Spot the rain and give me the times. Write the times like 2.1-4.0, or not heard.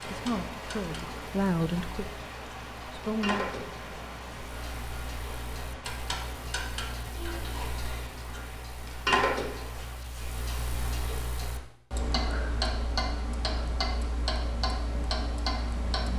0.0-10.0.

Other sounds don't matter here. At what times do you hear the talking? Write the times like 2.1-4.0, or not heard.
0.0-2.2, 2.9-3.5.